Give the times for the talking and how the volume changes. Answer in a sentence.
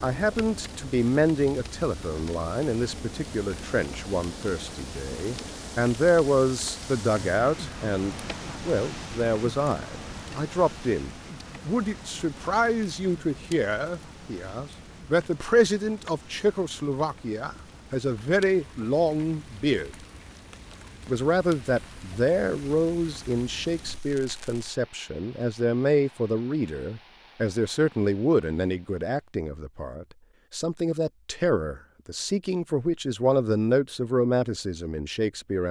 You can hear the talking from 0.0 to 19.9 s, at a steady volume; and from 21.1 to 35.6 s, at a steady volume.